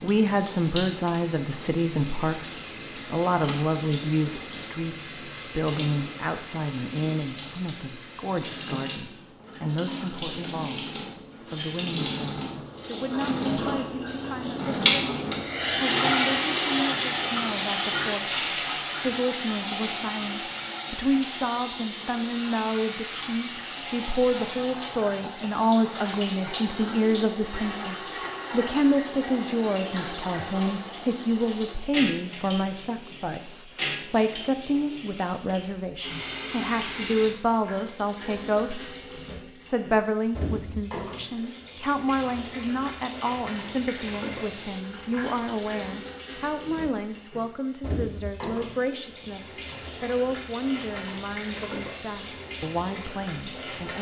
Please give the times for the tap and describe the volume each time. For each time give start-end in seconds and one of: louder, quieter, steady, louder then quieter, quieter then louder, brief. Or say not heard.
0.0-53.9 louder then quieter.